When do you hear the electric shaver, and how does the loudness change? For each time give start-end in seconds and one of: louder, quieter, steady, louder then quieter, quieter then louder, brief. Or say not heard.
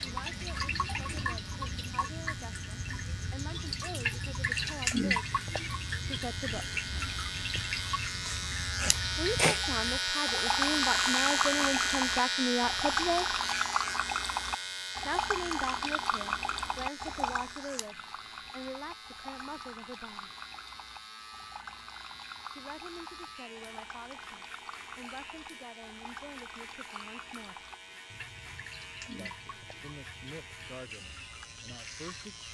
0.0-32.5 louder then quieter.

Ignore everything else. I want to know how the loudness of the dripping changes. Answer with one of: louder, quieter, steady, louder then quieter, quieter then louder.
quieter.